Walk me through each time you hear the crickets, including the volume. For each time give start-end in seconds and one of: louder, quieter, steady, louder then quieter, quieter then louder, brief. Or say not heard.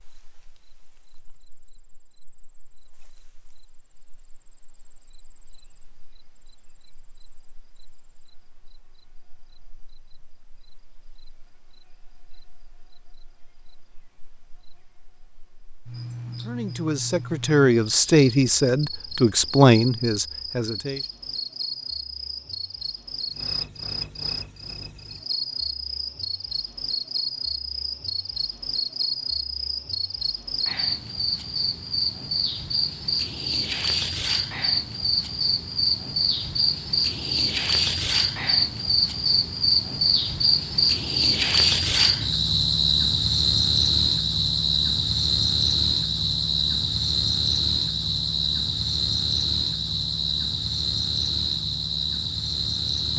0.0-53.1 louder.